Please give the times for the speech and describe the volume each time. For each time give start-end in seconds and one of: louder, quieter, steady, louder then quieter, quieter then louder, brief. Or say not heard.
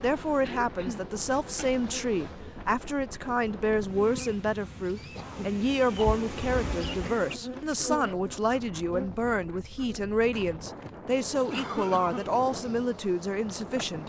0.0-14.0 steady.